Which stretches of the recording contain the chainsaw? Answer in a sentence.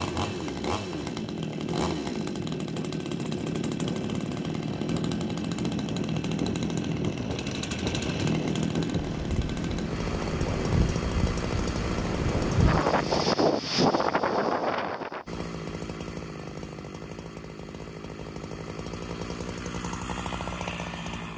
The chainsaw can be heard from 0.0 to 13.3 s and from 15.2 to 21.3 s.